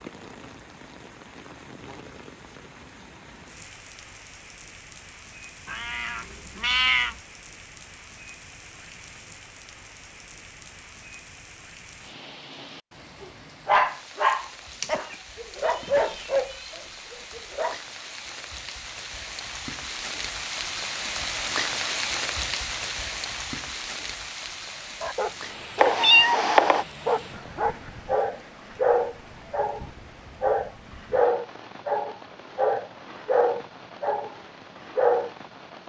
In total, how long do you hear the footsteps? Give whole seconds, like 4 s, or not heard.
not heard.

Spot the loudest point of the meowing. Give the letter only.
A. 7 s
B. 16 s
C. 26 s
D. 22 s
C.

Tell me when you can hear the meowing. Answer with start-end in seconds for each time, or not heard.
5.7-7.2, 14.2-16.7, 25.8-26.9.